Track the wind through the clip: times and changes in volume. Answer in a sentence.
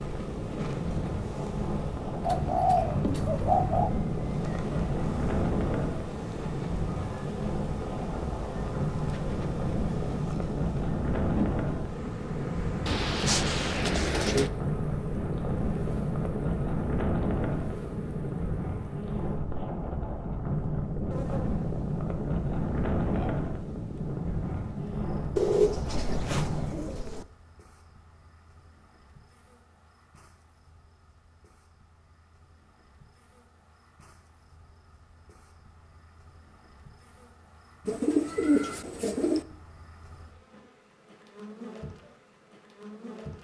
You can hear the wind from 0.0 to 27.1 s, at a steady volume.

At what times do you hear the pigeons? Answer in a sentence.
The pigeons can be heard from 2.2 to 3.9 s, from 12.8 to 14.5 s, from 25.4 to 27.2 s and from 37.9 to 39.5 s.